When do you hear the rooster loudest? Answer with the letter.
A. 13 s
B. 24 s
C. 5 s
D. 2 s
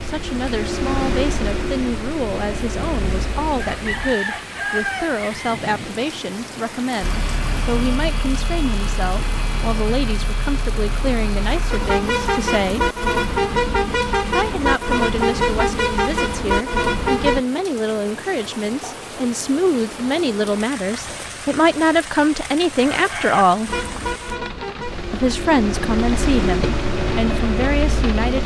C.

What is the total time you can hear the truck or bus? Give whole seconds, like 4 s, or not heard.
19 s.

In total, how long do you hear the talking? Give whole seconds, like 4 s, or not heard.
26 s.